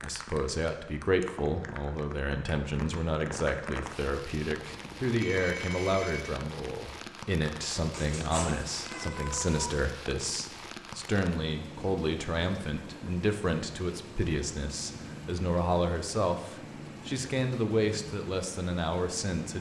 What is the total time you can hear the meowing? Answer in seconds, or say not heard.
2 s.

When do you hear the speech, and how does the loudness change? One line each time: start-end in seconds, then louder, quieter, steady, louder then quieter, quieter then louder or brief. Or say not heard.
0.0-19.5 steady.